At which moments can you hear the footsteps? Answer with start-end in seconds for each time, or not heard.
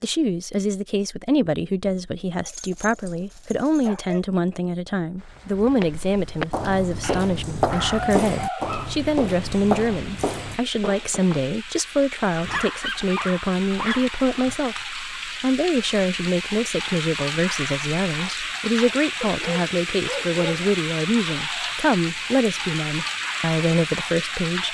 5.8-11.4.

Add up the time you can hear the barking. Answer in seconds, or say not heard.
7 s.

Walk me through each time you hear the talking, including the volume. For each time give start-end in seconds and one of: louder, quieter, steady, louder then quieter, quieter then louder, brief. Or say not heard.
0.0-24.6 steady.